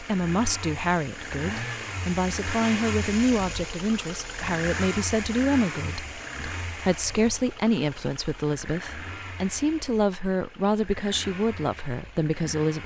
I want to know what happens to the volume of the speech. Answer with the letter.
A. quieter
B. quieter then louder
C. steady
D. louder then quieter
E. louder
C.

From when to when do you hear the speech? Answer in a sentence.
The speech can be heard from 0.0 to 12.8 s.